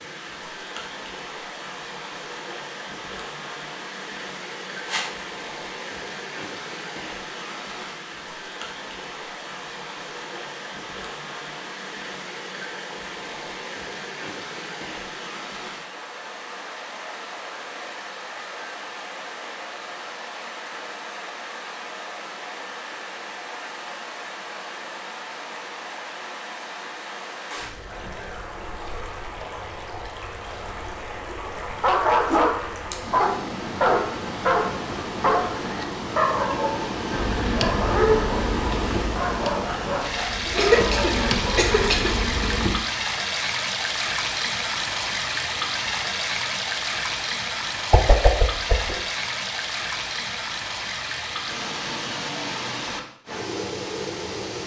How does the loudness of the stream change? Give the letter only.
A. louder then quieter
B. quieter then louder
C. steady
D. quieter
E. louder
E.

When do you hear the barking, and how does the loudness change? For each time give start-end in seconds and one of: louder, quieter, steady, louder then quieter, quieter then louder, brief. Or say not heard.
31.6-42.0 quieter.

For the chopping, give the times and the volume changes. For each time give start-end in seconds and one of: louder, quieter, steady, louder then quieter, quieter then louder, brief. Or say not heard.
not heard.